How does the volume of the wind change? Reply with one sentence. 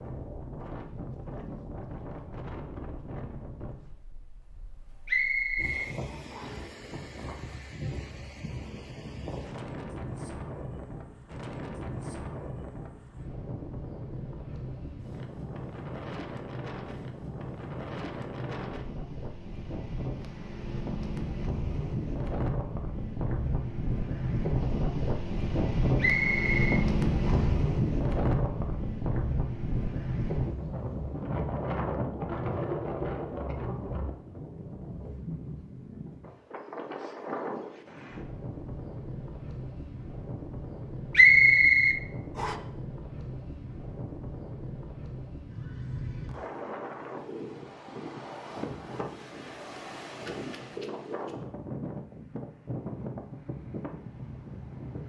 The loudness of the wind goes up, then down.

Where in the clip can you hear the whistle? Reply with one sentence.
The whistle can be heard from 5.0 to 6.7 s, from 25.9 to 27.6 s and from 41.1 to 42.5 s.